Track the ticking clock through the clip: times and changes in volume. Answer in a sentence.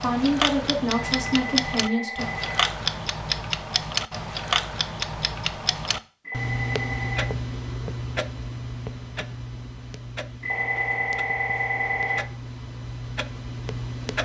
You can hear the ticking clock from 0.0 to 14.2 s, getting quieter.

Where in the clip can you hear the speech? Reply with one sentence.
The speech can be heard from 0.0 to 2.3 s.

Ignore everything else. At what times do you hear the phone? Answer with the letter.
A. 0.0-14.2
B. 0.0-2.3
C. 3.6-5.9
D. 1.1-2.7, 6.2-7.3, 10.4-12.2
D.